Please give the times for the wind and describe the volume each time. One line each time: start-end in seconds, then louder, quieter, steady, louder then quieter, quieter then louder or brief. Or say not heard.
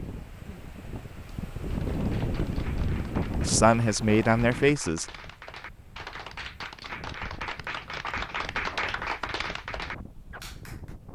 0.0-11.1 quieter.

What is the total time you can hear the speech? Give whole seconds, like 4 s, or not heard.
2 s.